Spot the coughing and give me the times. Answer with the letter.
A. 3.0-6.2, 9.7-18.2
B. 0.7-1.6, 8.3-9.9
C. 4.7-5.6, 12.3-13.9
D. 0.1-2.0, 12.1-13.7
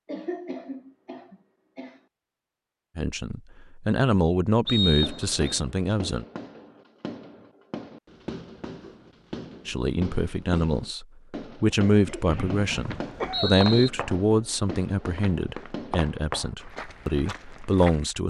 D.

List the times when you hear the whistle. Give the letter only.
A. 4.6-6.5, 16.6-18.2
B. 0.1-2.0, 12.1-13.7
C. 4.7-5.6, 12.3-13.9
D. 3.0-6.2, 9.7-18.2
C.